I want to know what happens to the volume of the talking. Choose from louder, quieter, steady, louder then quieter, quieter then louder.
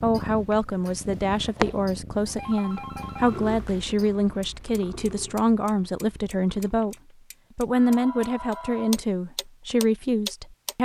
steady.